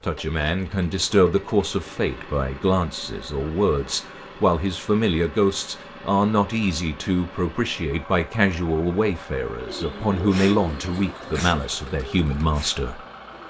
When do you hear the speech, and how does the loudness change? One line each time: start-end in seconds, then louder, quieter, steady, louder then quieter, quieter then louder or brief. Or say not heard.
0.0-13.0 steady.